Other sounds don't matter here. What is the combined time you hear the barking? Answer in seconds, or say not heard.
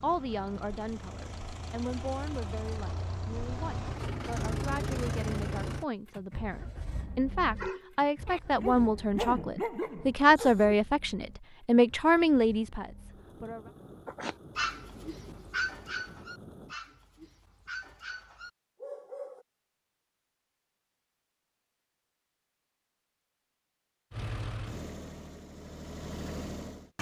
9 s.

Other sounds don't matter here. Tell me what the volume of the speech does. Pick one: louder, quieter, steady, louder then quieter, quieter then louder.
louder.